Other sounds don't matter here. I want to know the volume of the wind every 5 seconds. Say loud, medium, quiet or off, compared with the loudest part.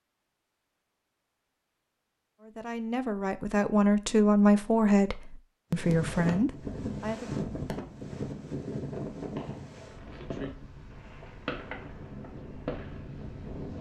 off, loud, medium.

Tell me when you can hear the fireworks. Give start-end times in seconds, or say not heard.
9.2-13.7.